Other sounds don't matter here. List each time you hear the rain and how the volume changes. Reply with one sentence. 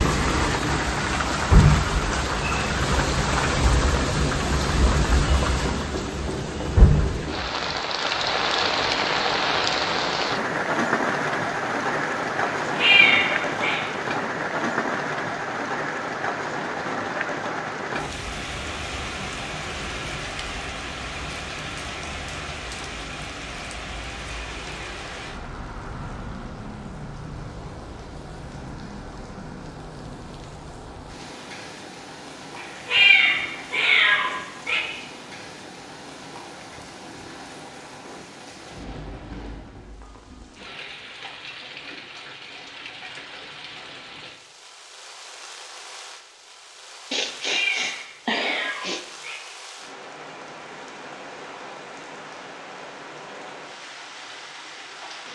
You can hear the rain from 0.0 to 55.3 s, getting quieter.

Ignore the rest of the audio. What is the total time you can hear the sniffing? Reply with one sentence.
The sniffing can be heard for 2 seconds in total.